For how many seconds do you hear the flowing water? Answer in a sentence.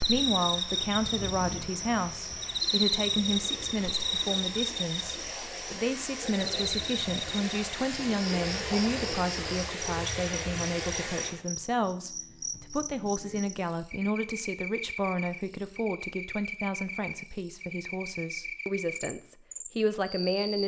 The flowing water can be heard for 11 seconds in total.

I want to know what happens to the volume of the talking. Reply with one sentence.
The loudness of the talking stays about the same.